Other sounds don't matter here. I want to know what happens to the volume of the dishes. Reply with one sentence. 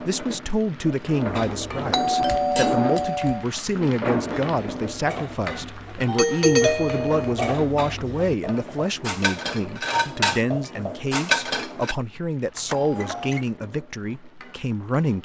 The volume of the dishes goes up.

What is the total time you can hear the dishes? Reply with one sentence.
The dishes can be heard for 11 seconds in total.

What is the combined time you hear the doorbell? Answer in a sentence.
You can hear the doorbell for 4 seconds altogether.